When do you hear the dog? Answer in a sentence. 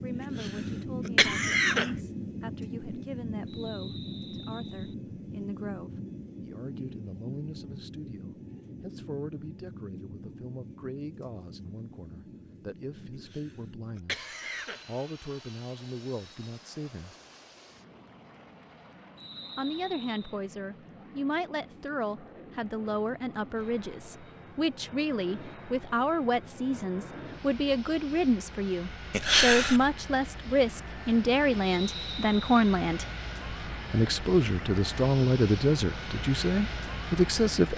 The dog can't be heard in this clip.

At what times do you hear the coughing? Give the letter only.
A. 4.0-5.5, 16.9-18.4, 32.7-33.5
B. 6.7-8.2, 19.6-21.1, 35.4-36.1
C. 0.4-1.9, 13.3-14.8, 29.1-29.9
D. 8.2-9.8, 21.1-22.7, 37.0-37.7
C.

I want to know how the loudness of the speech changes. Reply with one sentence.
The volume of the speech goes up.